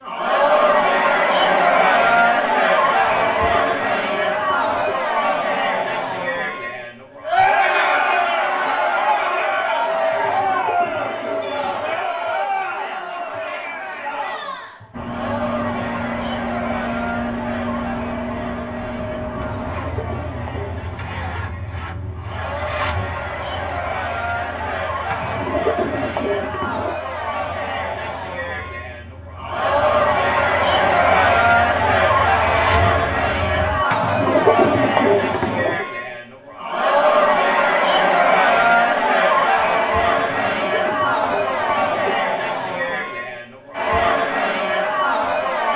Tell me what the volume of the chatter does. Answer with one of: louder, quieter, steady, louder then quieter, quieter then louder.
quieter then louder.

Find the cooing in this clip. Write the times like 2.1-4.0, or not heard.
3.1-5.0, 10.1-12.1, 19.4-21.0, 25.1-26.9, 33.9-35.9, 40.1-42.2.